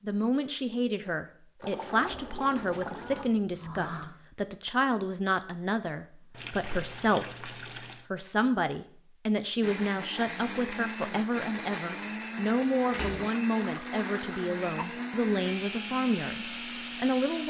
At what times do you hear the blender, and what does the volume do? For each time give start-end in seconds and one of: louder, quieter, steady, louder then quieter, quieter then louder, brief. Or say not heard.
9.6-17.4 steady.